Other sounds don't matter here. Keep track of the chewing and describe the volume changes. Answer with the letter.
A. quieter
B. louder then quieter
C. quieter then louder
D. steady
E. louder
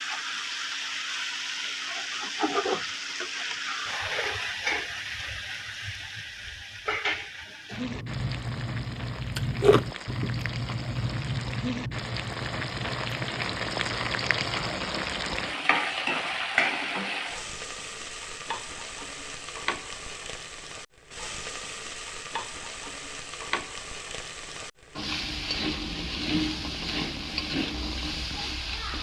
B.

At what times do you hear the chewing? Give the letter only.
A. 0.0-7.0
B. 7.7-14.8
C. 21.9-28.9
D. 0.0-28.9
B.